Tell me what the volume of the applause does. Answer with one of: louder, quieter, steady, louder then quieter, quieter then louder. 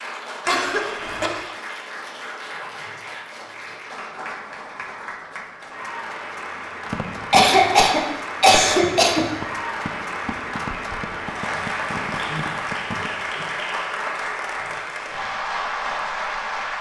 louder.